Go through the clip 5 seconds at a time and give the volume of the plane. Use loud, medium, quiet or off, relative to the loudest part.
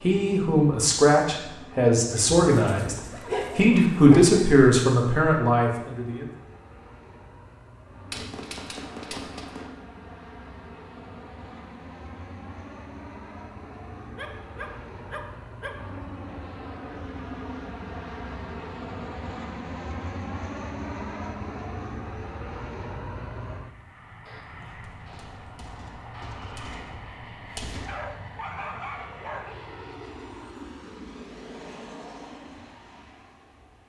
medium, medium, medium, loud, loud, medium, medium.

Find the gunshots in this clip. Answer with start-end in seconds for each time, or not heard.
8.1-9.7, 24.2-27.9.